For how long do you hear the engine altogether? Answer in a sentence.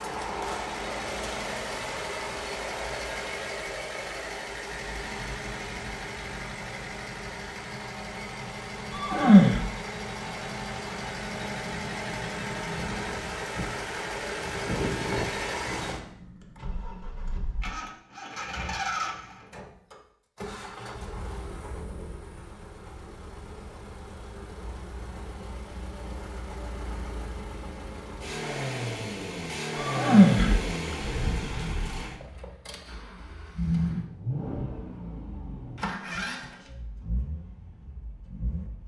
You can hear the engine for 39 seconds altogether.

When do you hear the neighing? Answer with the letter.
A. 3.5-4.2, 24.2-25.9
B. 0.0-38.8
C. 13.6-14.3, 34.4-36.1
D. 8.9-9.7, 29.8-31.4
D.